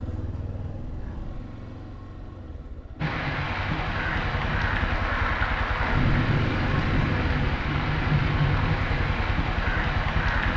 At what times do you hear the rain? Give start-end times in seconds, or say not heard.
3.0-10.5.